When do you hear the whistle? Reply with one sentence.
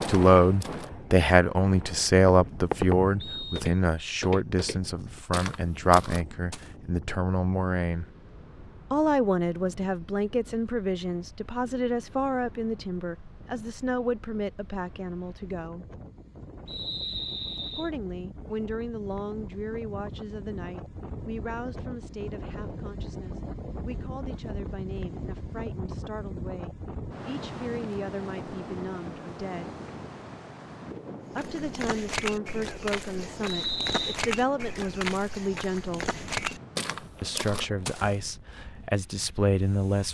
You can hear the whistle from 3.2 to 4.2 s, from 16.6 to 17.9 s and from 33.5 to 34.2 s.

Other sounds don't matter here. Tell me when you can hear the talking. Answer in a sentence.
You can hear the talking from 0.1 to 8.1 s, from 8.9 to 15.8 s, from 17.8 to 29.8 s, from 31.4 to 36.1 s and from 37.2 to 40.0 s.